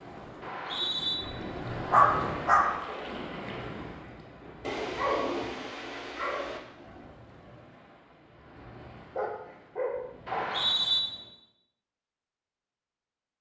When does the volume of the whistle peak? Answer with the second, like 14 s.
11 s.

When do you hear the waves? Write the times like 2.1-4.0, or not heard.
0.0-11.3.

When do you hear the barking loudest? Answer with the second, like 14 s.
2 s.